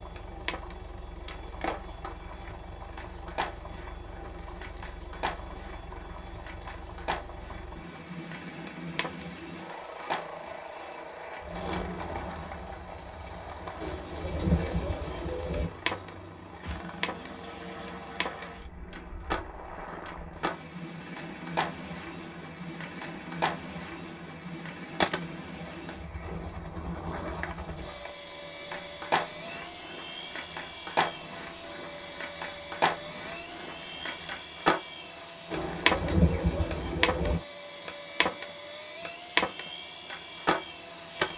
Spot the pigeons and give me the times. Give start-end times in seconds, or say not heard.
13.8-15.7, 35.5-37.4.